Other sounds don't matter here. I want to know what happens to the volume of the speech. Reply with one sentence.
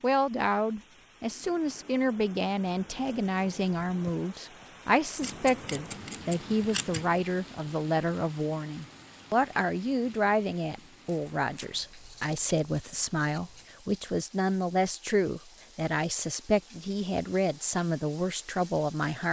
The loudness of the speech stays about the same.